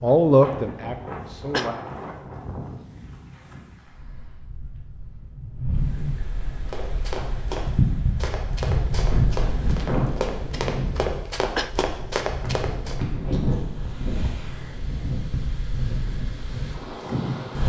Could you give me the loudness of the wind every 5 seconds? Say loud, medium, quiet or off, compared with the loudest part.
medium, loud, loud, loud.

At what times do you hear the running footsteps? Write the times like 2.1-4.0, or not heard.
6.4-13.0.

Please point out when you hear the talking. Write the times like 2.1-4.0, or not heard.
0.0-1.8.